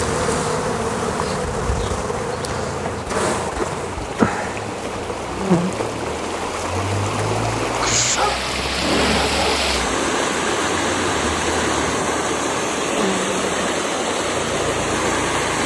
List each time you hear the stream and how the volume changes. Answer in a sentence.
You can hear the stream from 0.0 to 15.6 s, getting louder.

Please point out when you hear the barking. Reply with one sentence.
You can hear the barking from 7.6 to 9.7 s.